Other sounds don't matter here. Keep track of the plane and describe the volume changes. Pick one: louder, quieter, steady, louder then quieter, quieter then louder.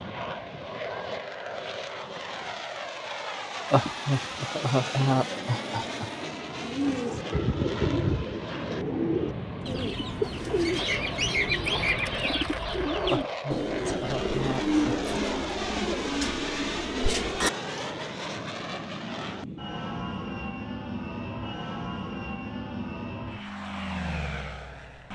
steady.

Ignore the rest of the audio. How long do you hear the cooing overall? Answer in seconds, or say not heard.
11 s.